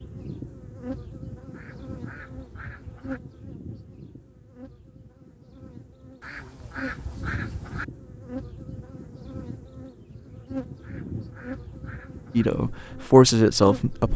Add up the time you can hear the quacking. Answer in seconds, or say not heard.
5 s.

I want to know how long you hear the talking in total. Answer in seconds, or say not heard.
2 s.